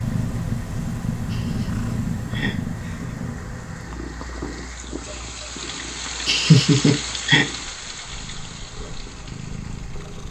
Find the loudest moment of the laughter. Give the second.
7 s.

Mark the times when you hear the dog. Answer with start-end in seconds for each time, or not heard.
not heard.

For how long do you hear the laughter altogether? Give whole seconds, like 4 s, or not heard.
3 s.